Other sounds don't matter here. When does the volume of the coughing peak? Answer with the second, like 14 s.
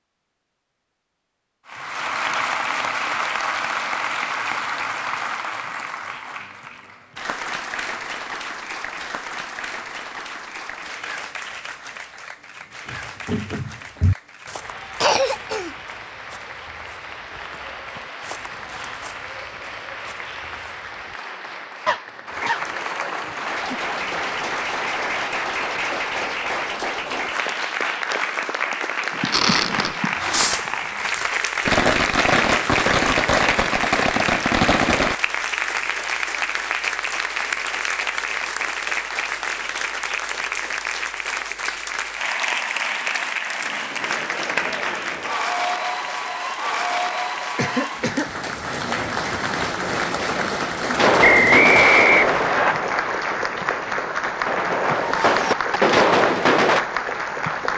15 s.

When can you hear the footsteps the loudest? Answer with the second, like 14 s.
13 s.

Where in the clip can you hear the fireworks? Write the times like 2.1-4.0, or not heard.
29.3-35.1, 51.0-56.8.